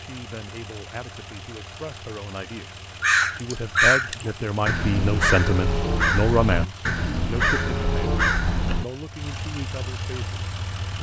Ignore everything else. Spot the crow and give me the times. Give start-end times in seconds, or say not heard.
3.0-8.8.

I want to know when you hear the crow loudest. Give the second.
4 s.